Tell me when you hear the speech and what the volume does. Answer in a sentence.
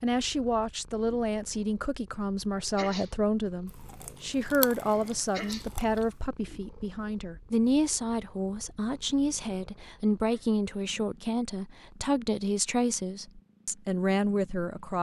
You can hear the speech from 0.0 to 14.9 s, at a steady volume.